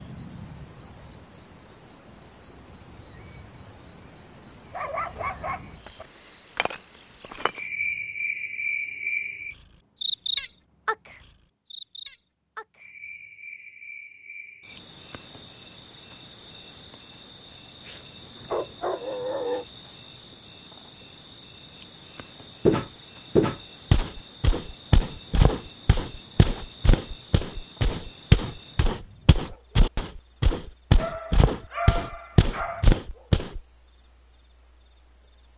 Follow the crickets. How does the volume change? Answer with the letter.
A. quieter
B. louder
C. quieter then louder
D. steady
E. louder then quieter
A.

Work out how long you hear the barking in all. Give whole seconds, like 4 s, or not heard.
5 s.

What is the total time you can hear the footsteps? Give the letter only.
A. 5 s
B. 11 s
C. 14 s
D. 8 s
B.